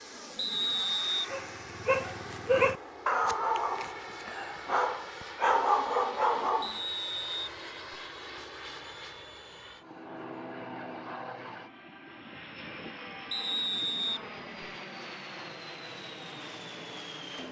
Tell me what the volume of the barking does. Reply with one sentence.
The loudness of the barking goes down, then up.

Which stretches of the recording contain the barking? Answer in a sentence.
The barking can be heard from 1.3 to 6.8 s.